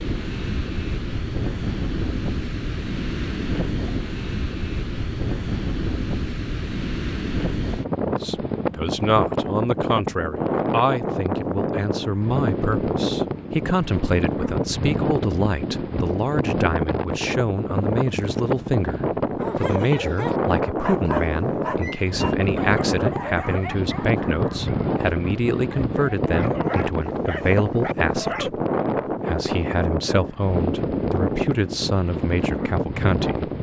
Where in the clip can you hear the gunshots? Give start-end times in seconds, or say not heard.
not heard.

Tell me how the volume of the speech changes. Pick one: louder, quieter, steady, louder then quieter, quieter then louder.
steady.